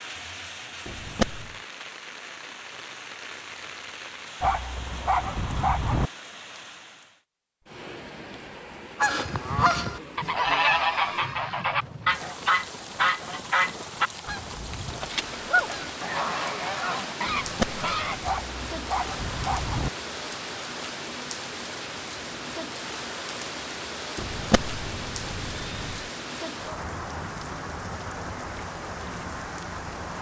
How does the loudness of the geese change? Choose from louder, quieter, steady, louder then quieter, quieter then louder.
quieter.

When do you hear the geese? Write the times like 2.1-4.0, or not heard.
9.0-18.1.